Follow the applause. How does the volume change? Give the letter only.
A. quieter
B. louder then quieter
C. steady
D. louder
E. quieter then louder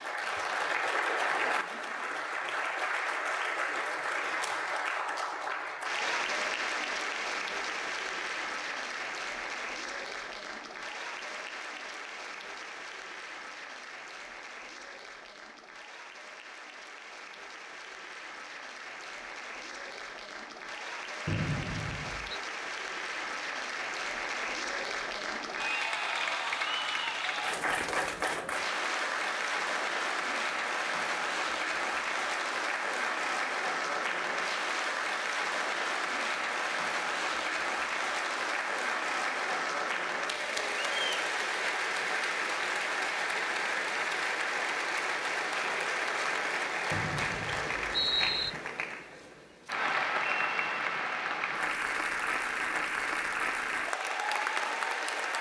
E.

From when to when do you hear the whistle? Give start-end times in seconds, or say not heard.
21.2-22.4, 46.9-48.5.